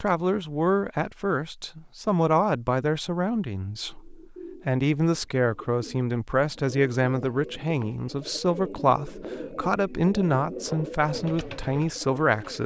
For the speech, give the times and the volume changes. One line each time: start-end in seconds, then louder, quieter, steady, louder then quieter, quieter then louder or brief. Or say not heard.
0.0-12.6 steady.